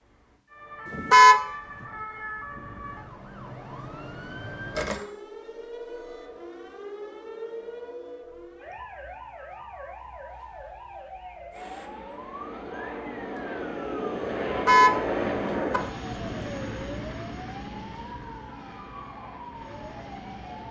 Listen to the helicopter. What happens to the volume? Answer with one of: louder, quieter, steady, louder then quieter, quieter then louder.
louder then quieter.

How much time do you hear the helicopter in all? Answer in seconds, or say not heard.
9 s.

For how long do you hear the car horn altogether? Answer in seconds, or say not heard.
2 s.